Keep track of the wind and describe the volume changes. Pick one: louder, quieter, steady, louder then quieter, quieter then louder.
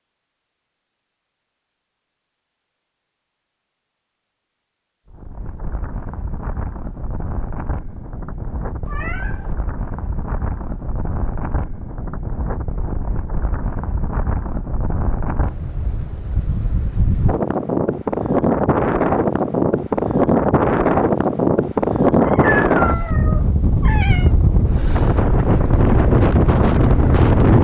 louder.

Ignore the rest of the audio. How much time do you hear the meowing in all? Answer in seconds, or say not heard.
3 s.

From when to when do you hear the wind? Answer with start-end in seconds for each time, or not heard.
5.1-27.5.